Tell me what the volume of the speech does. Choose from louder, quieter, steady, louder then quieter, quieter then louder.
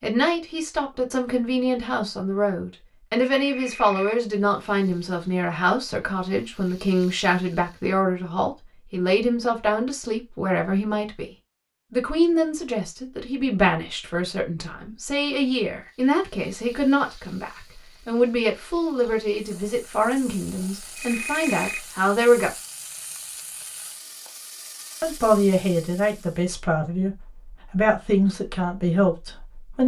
steady.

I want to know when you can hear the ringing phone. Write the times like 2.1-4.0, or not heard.
3.4-4.3, 20.9-22.0.